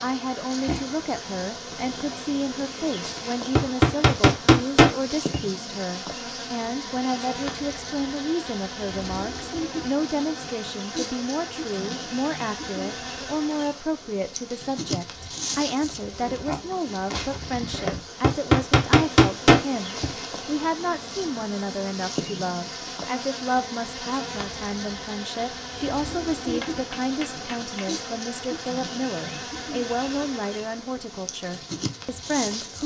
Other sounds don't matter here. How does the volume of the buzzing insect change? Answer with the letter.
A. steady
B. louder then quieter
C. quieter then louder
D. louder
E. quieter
A.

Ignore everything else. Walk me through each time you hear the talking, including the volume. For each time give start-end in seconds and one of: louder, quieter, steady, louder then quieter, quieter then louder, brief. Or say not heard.
0.0-32.8 steady.